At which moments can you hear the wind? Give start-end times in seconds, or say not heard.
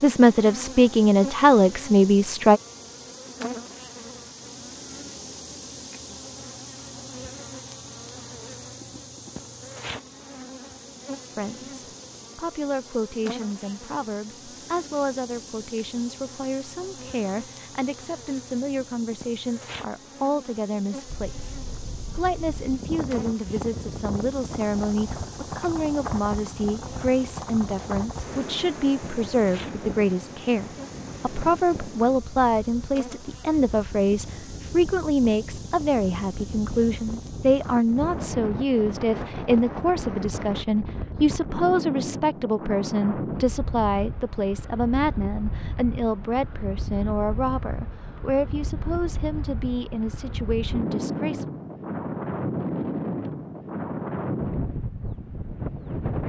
21.1-56.2.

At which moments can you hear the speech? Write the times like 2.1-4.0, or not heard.
0.0-2.6, 11.3-21.5, 22.1-51.5.